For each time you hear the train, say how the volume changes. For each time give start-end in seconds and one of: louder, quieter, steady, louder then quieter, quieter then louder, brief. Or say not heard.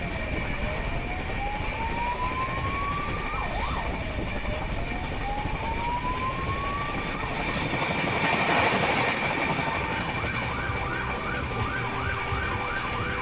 0.0-13.1 louder then quieter.